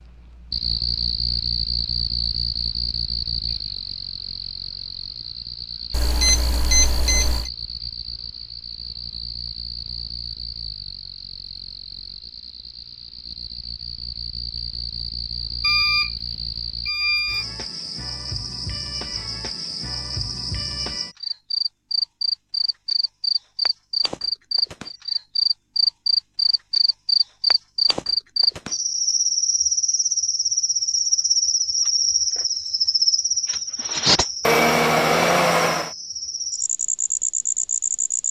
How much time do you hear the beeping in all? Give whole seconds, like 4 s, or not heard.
5 s.